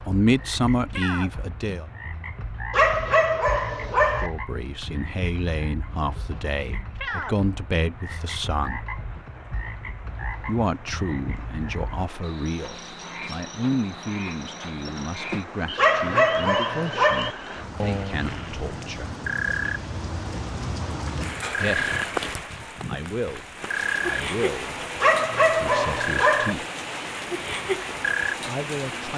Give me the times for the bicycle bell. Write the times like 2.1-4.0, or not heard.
not heard.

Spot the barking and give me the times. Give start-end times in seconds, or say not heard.
2.7-4.3, 15.8-17.3, 25.0-26.6.